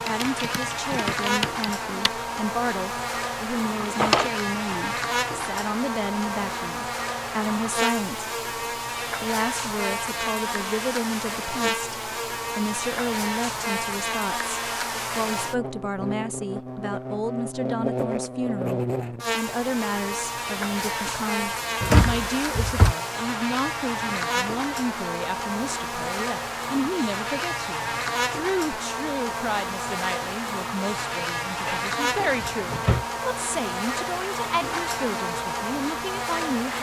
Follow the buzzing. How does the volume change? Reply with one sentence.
The volume of the buzzing stays about the same.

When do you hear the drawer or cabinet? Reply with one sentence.
The drawer or cabinet can be heard from 3.8 to 4.3 s, from 21.8 to 22.9 s and from 31.6 to 33.0 s.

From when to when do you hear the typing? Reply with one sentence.
The typing can be heard from 0.0 to 2.1 s.